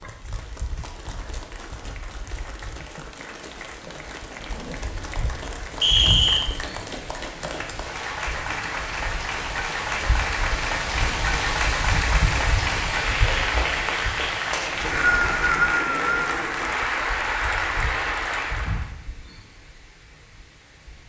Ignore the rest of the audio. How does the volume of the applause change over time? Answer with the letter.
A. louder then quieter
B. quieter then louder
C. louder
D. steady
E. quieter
C.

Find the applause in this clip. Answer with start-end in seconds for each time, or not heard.
0.0-18.9.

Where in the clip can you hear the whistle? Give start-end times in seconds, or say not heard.
5.8-6.5, 14.5-16.3.